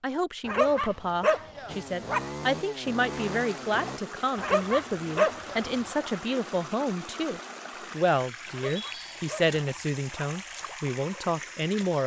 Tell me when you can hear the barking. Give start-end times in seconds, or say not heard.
0.5-2.3, 4.3-6.1, 8.5-10.3.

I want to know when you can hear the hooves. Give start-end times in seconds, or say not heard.
not heard.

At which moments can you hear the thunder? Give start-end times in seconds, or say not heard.
not heard.